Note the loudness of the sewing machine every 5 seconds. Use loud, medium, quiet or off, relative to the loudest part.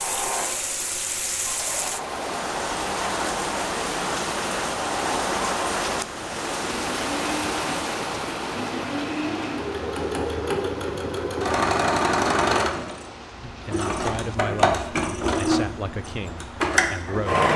medium, medium, loud, loud.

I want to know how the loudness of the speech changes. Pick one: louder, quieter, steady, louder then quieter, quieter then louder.
quieter.